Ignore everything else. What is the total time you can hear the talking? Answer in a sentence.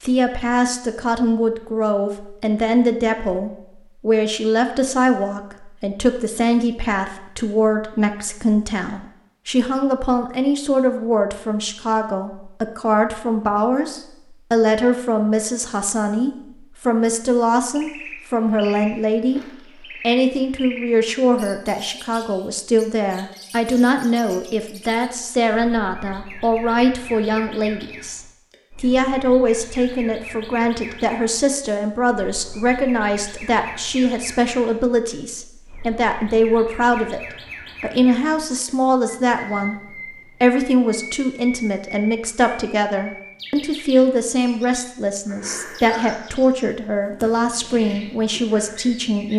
You can hear the talking for 47 seconds altogether.